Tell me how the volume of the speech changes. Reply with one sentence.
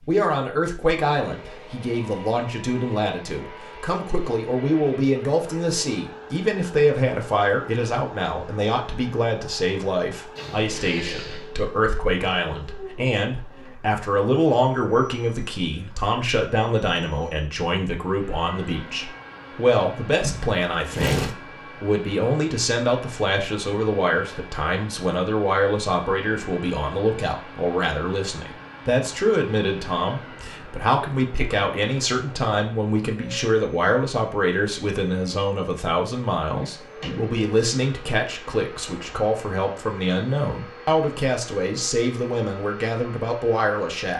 The loudness of the speech stays about the same.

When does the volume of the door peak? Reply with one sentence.
The loudest moment of the door is at 21 seconds.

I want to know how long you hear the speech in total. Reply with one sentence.
The speech can be heard for 44 seconds in total.